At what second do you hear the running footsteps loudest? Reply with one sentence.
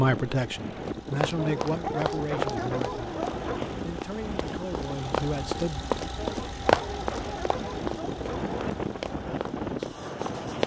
The loudest moment of the running footsteps is at 7 seconds.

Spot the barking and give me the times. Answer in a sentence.
You can hear the barking from 1.4 to 3.6 s and from 6.2 to 8.7 s.